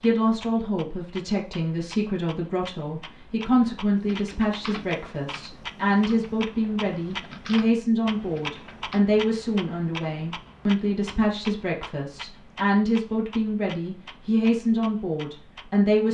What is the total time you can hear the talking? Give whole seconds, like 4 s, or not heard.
16 s.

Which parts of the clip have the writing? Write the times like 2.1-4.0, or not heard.
not heard.